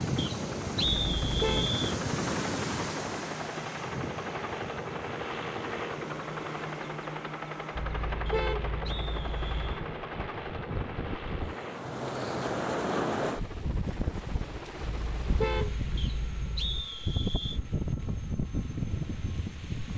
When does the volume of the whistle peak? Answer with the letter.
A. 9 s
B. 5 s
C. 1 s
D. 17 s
C.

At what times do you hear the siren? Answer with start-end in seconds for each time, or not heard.
not heard.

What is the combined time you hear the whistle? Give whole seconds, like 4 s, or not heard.
5 s.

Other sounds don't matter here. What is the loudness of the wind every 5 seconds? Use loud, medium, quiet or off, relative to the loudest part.
loud, quiet, loud, loud.